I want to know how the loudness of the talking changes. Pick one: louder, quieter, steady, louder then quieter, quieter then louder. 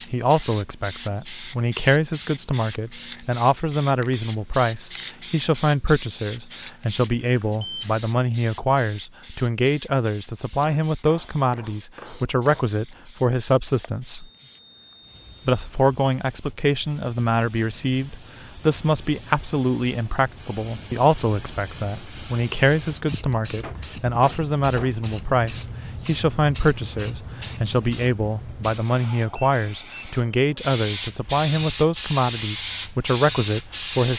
steady.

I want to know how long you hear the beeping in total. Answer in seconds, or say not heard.
3 s.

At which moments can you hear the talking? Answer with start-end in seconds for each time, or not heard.
0.1-14.2, 15.4-34.1.